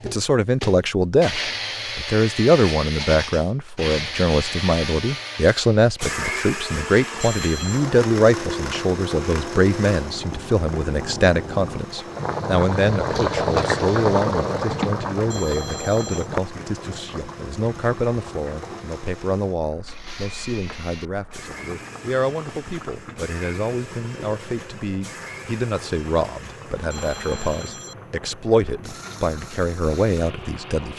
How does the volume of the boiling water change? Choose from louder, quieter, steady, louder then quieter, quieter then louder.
louder then quieter.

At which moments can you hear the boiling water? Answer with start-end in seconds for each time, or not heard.
7.5-30.9.